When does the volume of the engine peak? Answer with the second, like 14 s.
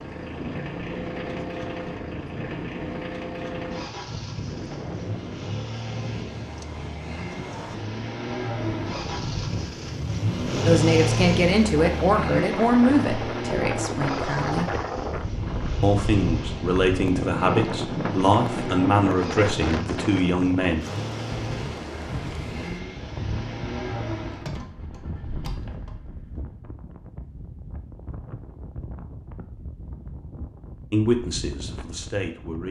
11 s.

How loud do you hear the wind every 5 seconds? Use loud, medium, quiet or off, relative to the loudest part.
medium, medium, loud, loud, medium, quiet, quiet.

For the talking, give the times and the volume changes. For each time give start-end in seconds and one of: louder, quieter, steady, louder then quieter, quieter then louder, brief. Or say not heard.
10.6-14.7 quieter
15.8-20.9 steady
30.9-32.6 brief.